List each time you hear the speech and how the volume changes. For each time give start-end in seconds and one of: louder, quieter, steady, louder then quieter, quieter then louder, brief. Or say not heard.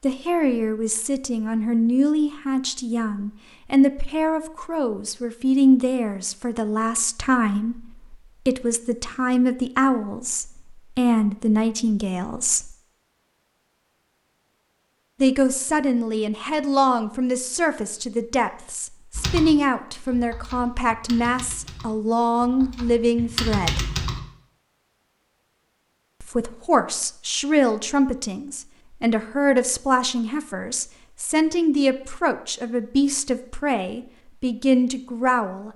0.0-12.7 steady
15.2-23.8 steady
26.2-35.7 steady.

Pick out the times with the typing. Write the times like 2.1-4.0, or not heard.
19.1-24.2.